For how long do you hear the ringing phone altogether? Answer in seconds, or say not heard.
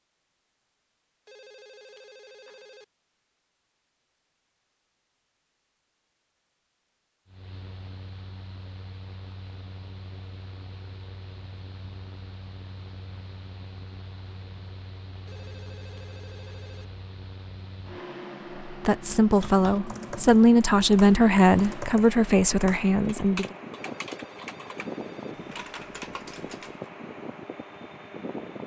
5 s.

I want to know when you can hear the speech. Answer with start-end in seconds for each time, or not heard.
18.6-23.4.